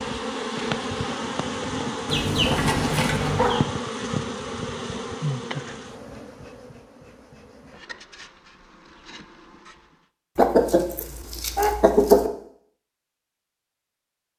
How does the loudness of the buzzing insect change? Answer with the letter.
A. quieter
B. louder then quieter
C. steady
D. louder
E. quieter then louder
A.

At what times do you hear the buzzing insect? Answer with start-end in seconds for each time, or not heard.
0.0-10.1.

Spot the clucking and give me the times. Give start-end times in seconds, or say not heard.
2.0-3.6, 10.3-12.3.